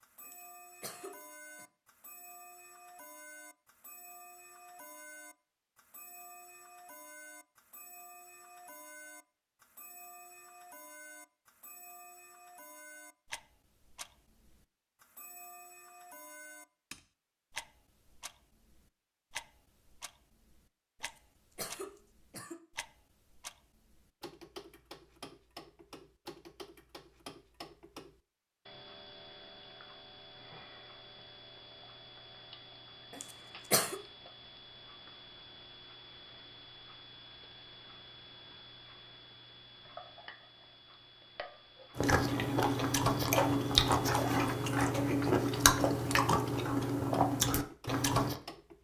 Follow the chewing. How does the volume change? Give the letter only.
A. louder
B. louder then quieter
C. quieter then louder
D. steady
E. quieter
D.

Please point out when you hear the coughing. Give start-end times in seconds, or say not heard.
0.2-1.6, 21.0-22.6, 33.1-34.0.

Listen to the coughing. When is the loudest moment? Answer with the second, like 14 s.
34 s.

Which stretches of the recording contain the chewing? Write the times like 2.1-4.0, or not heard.
42.0-48.4.